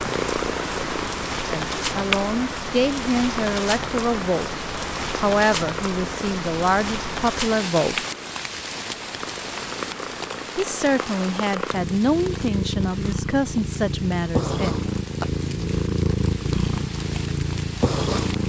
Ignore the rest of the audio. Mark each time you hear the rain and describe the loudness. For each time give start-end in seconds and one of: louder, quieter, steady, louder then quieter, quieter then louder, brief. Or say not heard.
0.0-18.4 quieter.